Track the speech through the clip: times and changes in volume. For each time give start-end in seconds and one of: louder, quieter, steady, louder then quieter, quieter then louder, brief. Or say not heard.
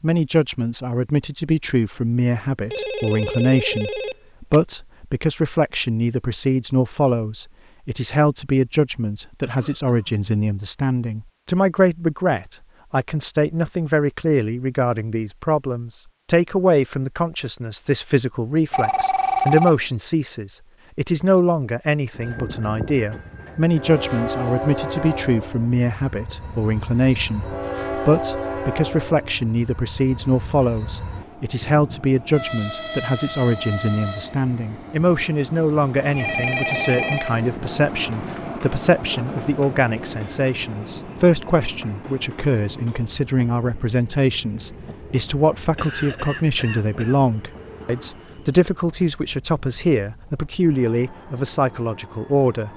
0.0-52.7 steady.